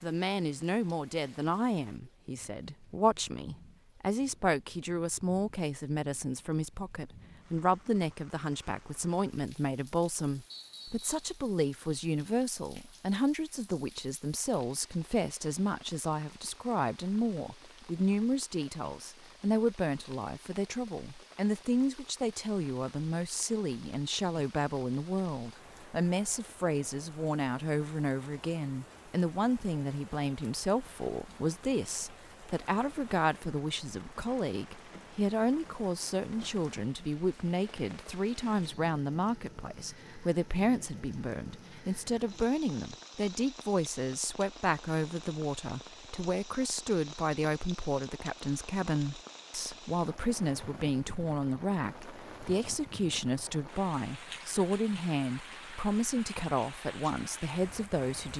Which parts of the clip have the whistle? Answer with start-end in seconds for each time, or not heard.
10.5-11.2.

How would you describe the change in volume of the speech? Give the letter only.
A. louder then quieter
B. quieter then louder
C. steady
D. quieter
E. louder
C.